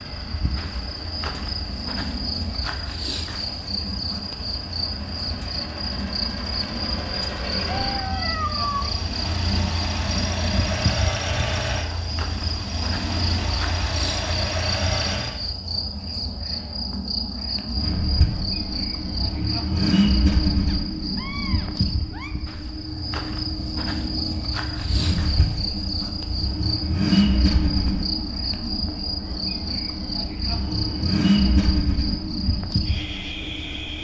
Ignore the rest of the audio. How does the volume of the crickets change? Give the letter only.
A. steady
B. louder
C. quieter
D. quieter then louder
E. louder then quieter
A.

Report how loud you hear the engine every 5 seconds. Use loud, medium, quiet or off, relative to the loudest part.
quiet, medium, loud, loud, loud, loud, loud.